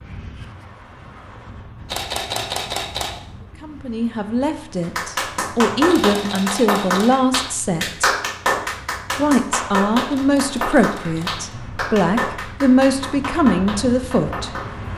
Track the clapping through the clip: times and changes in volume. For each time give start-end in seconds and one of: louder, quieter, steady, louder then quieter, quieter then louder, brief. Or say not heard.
4.8-14.7 quieter.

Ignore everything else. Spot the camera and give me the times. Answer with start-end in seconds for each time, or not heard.
1.9-3.2, 5.8-7.2, 10.1-11.4.